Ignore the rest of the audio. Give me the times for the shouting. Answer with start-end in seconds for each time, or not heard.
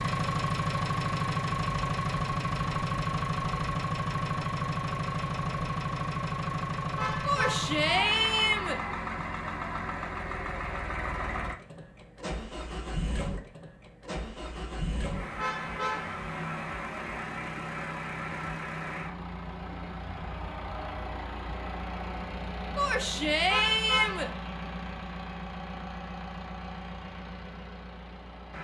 7.2-8.8, 22.8-24.3.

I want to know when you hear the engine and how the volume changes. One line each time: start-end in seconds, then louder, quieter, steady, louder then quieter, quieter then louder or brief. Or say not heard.
0.0-28.5 quieter.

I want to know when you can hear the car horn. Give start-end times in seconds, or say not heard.
7.0-7.7, 15.3-16.2, 23.4-24.4.